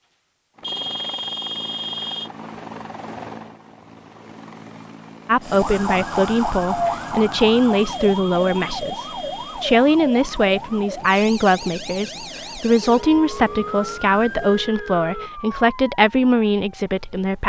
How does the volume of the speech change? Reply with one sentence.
The volume of the speech stays about the same.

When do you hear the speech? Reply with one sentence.
You can hear the speech from 5.2 to 17.4 s.